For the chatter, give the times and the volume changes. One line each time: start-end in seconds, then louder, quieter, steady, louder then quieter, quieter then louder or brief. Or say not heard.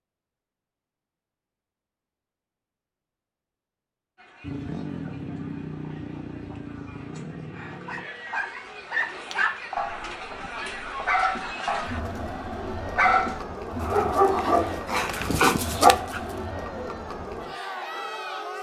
4.2-18.5 louder.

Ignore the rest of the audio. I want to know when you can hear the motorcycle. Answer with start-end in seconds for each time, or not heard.
4.4-8.1.